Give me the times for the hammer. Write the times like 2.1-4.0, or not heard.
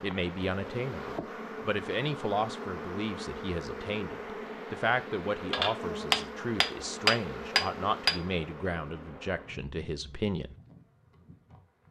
5.5-8.2.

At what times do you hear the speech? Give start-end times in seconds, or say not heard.
0.0-10.6.